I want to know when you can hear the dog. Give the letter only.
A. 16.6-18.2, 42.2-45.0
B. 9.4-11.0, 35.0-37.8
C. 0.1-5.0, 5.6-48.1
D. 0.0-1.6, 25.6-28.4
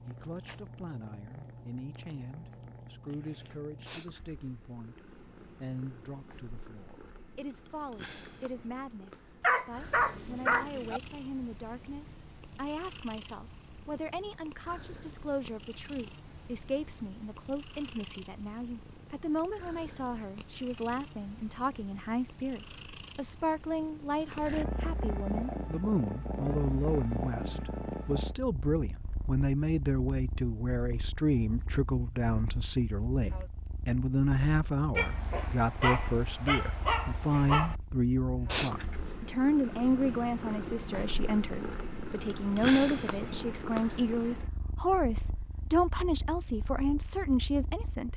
B.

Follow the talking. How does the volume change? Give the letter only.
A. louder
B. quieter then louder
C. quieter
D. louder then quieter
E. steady
A.